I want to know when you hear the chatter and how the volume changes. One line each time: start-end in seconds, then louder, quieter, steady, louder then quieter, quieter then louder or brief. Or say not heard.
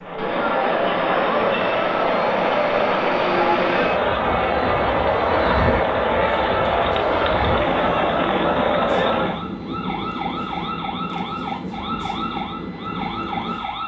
0.0-9.4 steady.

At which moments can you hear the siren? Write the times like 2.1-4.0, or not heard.
6.2-13.8.